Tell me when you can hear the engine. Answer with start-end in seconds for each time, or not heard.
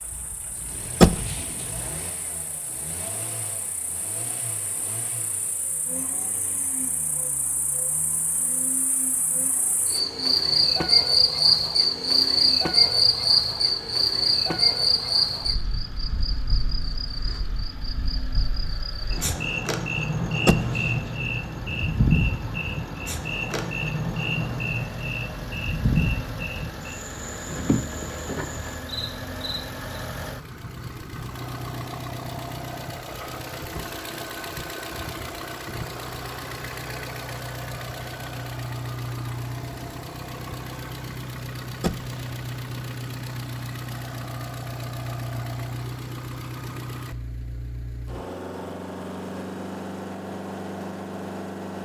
0.0-51.8.